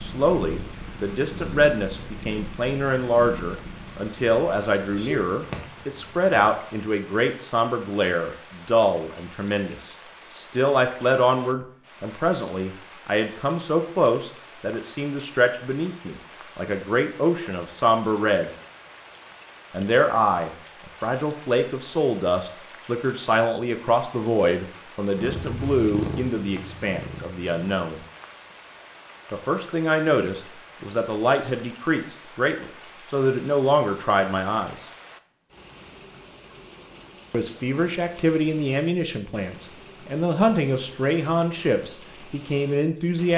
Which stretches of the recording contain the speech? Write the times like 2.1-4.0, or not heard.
0.0-18.5, 19.7-28.1, 29.3-34.9, 37.3-43.3.